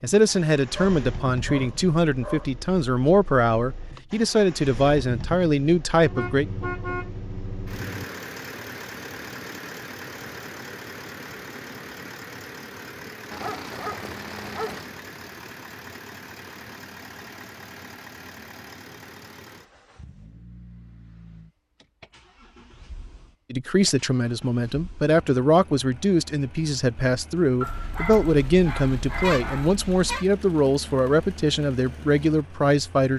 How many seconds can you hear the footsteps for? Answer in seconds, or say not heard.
not heard.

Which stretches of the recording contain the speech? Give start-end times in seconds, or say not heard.
0.0-6.5, 23.5-33.1.